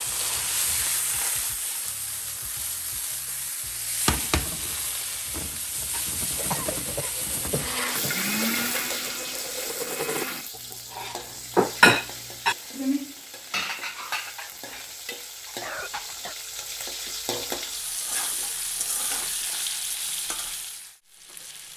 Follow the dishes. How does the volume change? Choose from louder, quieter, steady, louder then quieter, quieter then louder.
louder then quieter.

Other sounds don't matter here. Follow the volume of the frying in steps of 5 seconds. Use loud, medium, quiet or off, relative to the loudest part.
loud, loud, medium, loud, medium.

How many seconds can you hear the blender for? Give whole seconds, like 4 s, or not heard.
3 s.